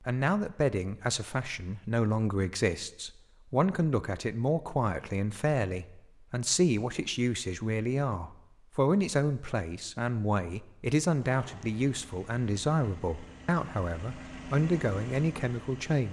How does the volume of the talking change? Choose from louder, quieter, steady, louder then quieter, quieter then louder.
steady.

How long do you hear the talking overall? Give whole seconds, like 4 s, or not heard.
16 s.